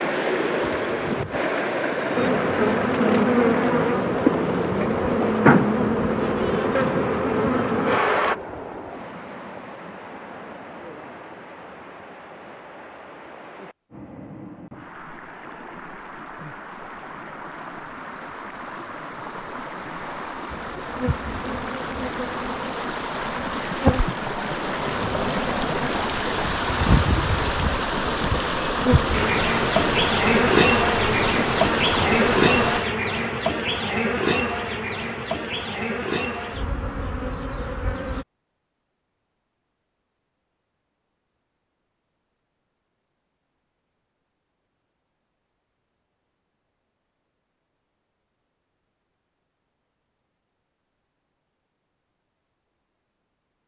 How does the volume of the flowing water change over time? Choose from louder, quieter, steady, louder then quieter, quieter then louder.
quieter then louder.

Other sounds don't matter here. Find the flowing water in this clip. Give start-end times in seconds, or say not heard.
0.0-32.9.